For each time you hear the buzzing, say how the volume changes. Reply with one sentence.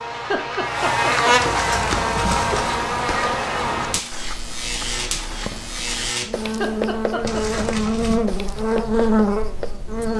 The buzzing can be heard from 0.0 to 10.1 s, getting quieter then louder.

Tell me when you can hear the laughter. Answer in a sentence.
You can hear the laughter from 0.1 to 1.4 s and from 6.5 to 7.7 s.